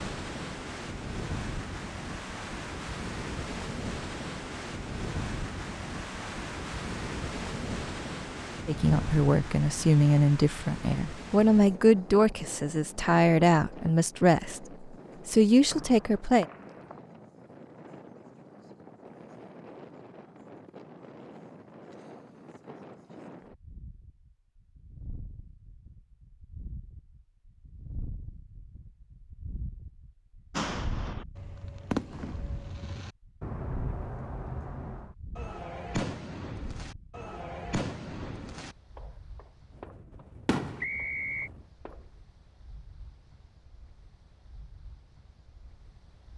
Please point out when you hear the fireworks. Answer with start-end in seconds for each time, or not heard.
30.5-42.0.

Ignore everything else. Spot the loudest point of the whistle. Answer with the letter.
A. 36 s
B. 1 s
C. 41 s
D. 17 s
C.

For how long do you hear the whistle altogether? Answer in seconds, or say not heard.
2 s.